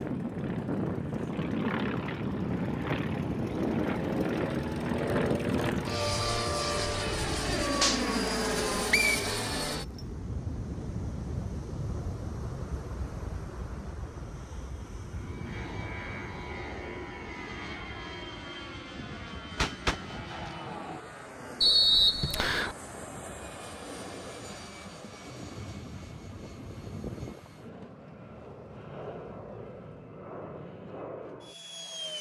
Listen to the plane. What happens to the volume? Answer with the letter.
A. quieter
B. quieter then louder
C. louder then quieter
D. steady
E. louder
A.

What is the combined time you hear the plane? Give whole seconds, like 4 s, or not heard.
32 s.